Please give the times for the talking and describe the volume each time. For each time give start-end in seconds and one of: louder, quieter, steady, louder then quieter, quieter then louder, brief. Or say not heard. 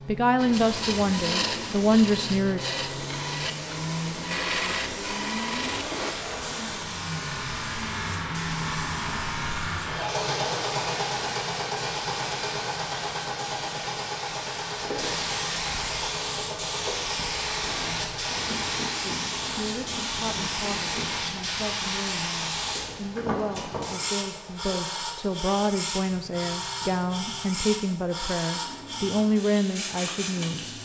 0.1-2.6 brief
19.0-30.6 louder.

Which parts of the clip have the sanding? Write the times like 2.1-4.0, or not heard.
0.3-6.2, 17.6-21.2.